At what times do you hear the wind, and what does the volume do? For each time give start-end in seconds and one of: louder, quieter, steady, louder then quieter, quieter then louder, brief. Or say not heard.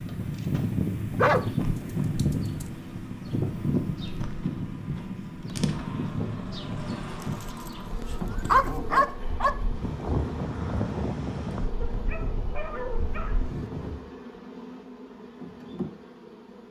0.0-14.1 quieter.